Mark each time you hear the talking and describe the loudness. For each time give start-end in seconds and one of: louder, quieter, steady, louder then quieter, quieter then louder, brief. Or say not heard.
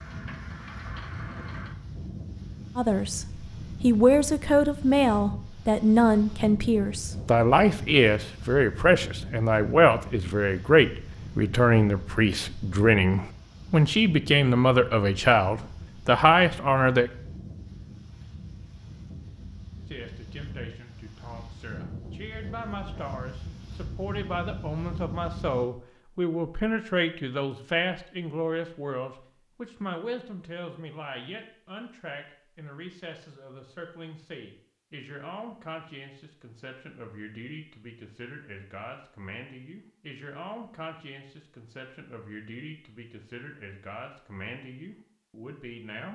2.8-17.1 steady
19.8-46.1 louder then quieter.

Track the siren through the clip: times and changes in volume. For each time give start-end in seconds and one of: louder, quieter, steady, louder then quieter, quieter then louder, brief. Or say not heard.
not heard.